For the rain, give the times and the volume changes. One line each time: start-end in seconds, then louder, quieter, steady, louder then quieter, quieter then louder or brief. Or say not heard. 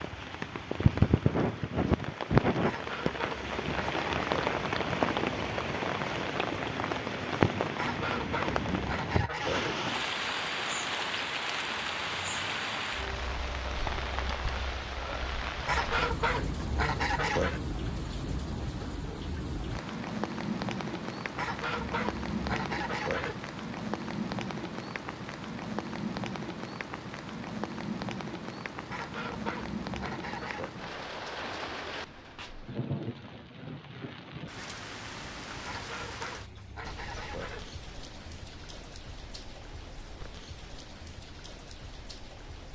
0.0-42.6 quieter.